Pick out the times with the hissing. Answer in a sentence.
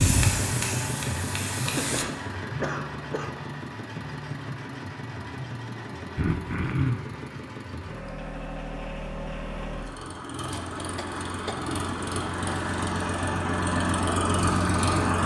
The hissing can be heard from 0.0 to 2.0 s.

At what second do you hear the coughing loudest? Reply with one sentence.
The loudest moment of the coughing is at 7 seconds.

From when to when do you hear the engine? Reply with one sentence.
You can hear the engine from 0.0 to 15.2 s.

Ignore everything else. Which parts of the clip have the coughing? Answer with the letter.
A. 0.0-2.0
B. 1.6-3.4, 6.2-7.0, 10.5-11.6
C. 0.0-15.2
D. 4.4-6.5
B.